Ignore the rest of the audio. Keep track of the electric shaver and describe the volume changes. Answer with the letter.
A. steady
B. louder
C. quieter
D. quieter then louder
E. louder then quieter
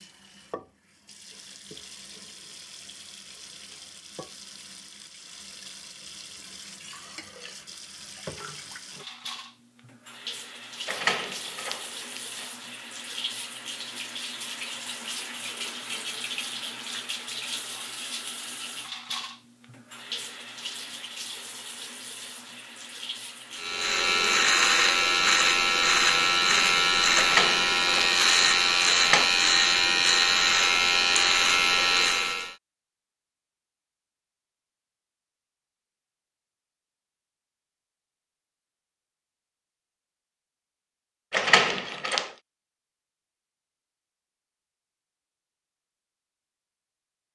A.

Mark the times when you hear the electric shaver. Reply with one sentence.
You can hear the electric shaver from 23.6 to 32.5 s.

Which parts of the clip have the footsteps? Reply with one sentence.
You can't hear the footsteps here.